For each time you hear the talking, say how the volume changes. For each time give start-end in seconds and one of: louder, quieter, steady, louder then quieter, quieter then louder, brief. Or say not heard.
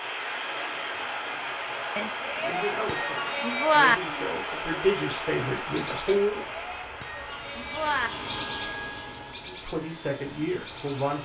2.4-6.5 louder then quieter
9.4-11.2 brief.